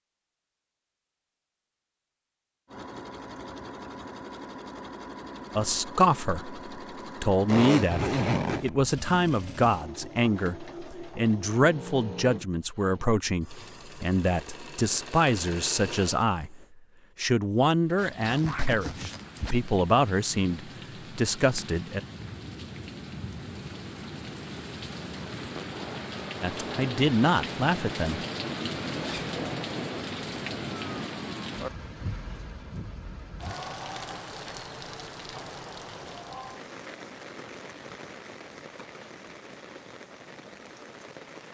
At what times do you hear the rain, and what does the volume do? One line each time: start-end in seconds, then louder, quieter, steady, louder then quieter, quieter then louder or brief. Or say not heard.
17.8-41.4 louder then quieter.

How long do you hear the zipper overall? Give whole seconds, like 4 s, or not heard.
3 s.